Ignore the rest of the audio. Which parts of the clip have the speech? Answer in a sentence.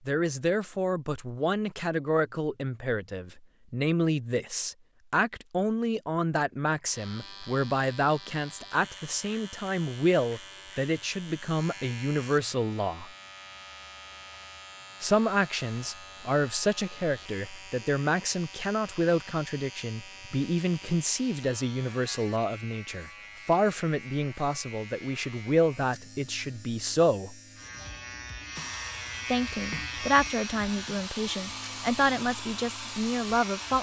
The speech can be heard from 0.1 to 13.1 s, from 15.0 to 27.3 s and from 29.3 to 33.7 s.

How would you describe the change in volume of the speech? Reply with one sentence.
The loudness of the speech stays about the same.